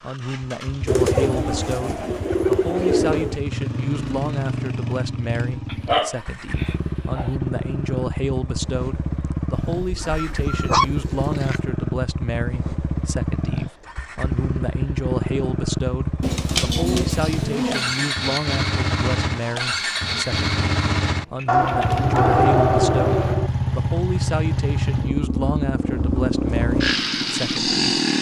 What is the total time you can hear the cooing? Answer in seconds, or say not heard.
8 s.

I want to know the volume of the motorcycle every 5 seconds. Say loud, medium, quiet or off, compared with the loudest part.
medium, medium, medium, loud, loud, loud.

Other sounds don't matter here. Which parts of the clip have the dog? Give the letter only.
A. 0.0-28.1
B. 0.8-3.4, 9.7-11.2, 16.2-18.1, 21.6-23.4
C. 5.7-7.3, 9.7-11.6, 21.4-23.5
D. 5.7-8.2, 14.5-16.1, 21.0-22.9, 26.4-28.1
C.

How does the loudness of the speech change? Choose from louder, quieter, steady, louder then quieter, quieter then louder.
steady.